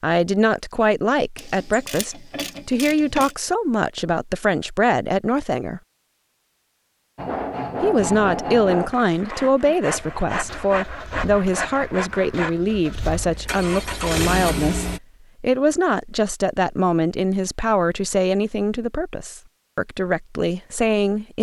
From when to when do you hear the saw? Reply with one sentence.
The saw can be heard from 7.2 to 12.6 s.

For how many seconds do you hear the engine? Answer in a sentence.
You can hear the engine for 5 seconds altogether.